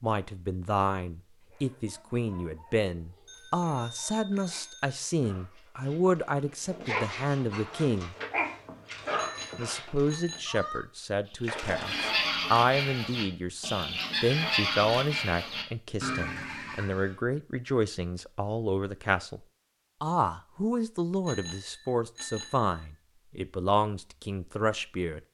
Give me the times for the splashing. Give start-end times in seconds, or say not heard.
11.4-12.3.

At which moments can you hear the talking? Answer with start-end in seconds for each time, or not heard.
0.0-8.2, 9.6-19.4, 20.0-25.2.